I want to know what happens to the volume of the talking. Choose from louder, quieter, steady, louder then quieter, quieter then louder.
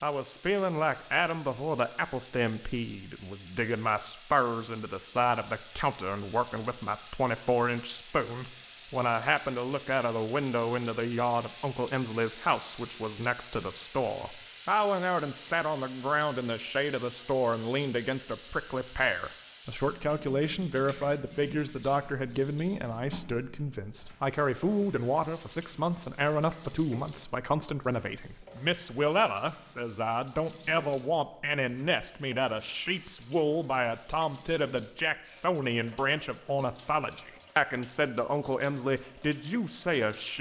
steady.